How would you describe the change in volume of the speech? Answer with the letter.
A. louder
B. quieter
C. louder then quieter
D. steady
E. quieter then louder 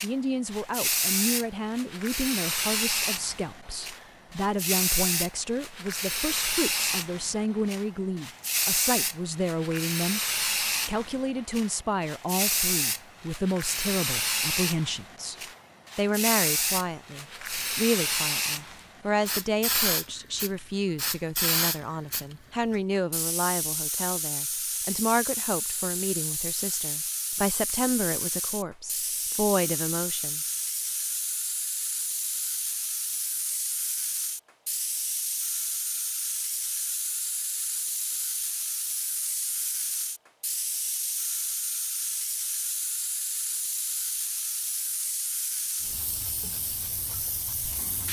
D.